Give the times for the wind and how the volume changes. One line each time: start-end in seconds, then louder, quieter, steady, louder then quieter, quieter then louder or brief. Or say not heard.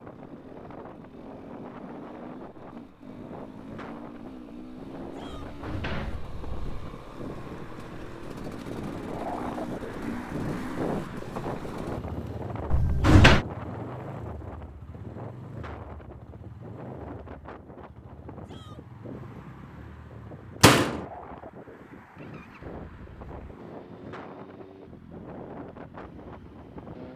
0.0-27.1 louder then quieter.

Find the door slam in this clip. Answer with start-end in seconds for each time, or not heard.
5.2-6.9, 12.7-13.4, 20.6-21.1.